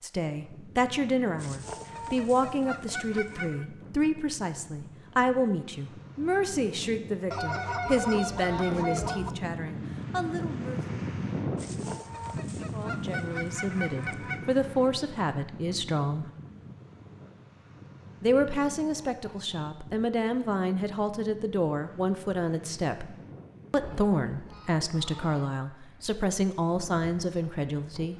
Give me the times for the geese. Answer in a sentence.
The geese can be heard from 1.4 to 3.6 s, from 7.3 to 9.3 s, from 11.6 to 14.5 s, from 18.2 to 20.1 s and from 23.8 to 25.6 s.